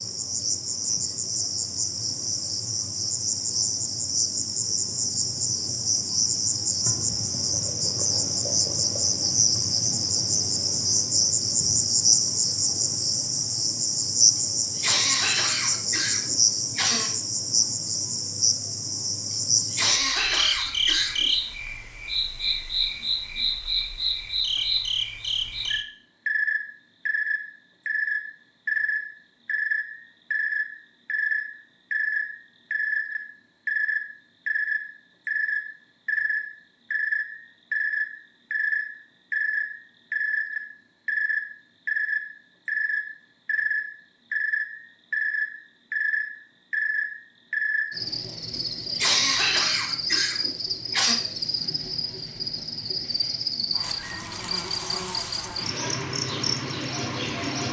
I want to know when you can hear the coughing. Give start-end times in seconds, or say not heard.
14.8-17.1, 19.3-21.2, 49.0-51.1.